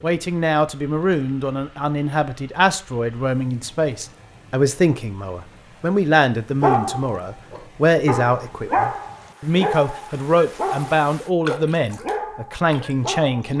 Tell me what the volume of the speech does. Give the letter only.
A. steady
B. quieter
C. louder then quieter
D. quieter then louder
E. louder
A.